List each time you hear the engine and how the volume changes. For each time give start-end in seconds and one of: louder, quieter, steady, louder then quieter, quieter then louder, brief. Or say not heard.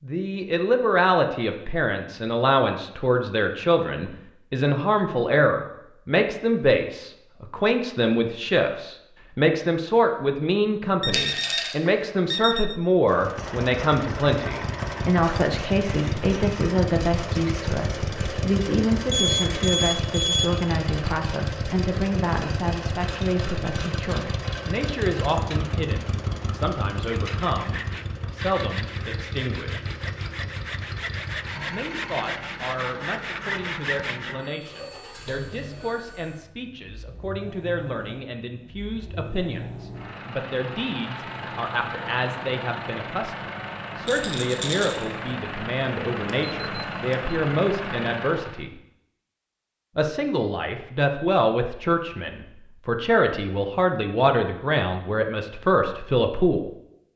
13.1-48.6 quieter then louder.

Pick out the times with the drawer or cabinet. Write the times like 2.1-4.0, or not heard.
not heard.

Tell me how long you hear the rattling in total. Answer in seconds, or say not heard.
2 s.